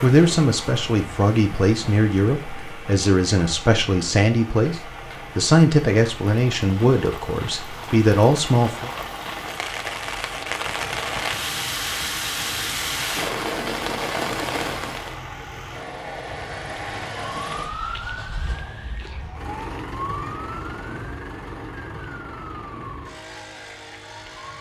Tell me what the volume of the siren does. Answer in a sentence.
The volume of the siren goes down.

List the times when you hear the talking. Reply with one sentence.
The talking can be heard from 0.0 to 8.9 s.